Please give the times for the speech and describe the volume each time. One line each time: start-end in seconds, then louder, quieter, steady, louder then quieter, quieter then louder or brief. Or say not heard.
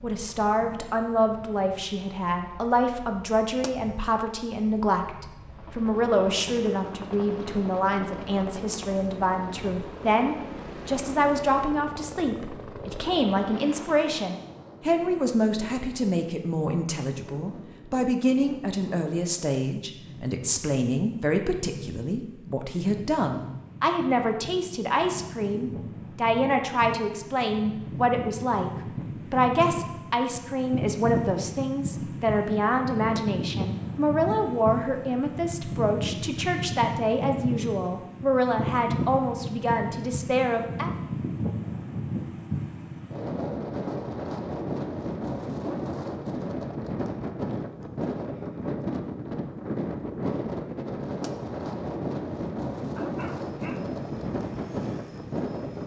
0.0-28.7 steady
29.3-40.9 steady.